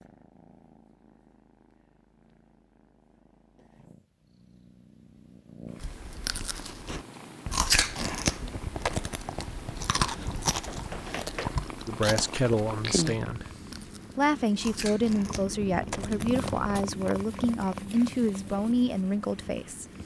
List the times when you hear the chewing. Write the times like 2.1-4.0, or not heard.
5.8-16.9.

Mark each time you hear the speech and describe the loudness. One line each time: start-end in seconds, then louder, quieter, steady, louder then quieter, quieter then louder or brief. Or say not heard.
11.8-13.4 brief
14.2-19.9 steady.